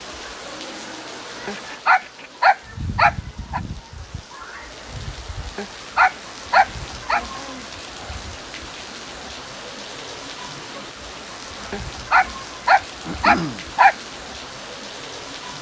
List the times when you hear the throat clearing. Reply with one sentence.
You can hear the throat clearing from 1.5 to 2.3 s, from 7.1 to 7.7 s and from 13.1 to 13.7 s.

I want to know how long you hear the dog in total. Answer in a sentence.
The dog can be heard for 6 seconds in total.